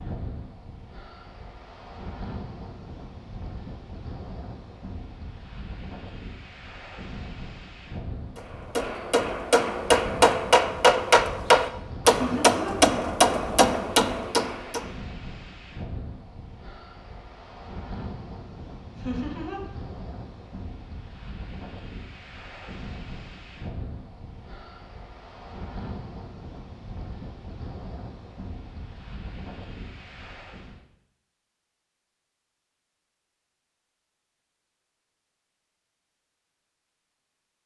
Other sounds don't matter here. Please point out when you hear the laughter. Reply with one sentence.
You can hear the laughter from 12.1 to 12.8 s and from 18.9 to 19.6 s.